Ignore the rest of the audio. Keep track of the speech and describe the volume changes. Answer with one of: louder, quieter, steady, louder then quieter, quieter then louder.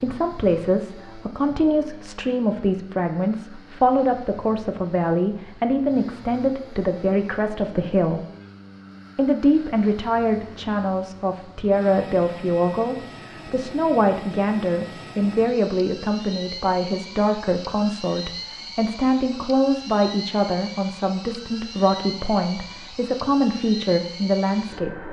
steady.